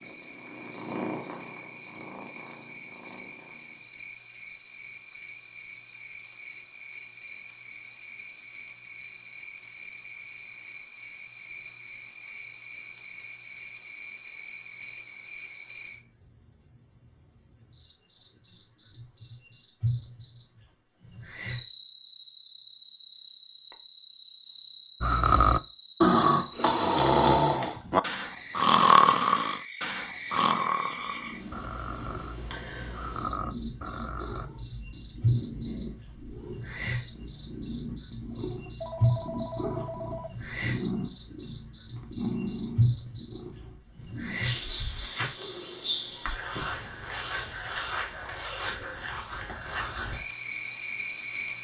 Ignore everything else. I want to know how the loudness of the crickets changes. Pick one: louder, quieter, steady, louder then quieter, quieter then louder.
louder.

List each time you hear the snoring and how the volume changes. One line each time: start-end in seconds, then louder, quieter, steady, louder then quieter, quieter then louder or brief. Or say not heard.
25.0-34.5 quieter.